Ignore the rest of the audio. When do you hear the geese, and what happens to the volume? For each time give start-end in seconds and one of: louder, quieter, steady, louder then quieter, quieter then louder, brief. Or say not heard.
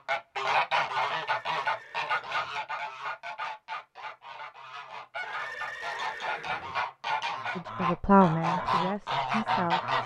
0.1-10.0 quieter then louder.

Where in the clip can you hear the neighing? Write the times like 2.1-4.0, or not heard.
1.2-2.6, 5.2-6.8.